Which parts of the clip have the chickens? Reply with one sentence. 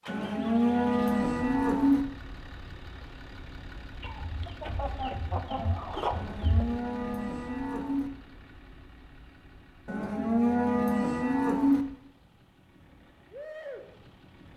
The chickens can be heard from 4.0 to 6.8 s.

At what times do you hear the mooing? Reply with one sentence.
The mooing can be heard from 0.1 to 2.0 s, from 6.2 to 8.1 s and from 9.8 to 11.8 s.